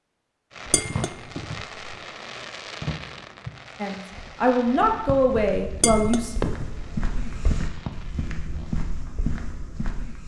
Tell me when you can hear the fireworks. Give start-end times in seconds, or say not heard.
0.5-8.8.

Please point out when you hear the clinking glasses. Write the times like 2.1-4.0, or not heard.
0.7-2.0, 5.8-7.6.